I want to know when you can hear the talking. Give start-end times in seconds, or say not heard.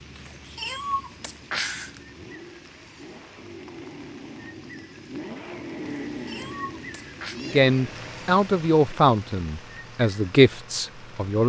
7.5-11.4.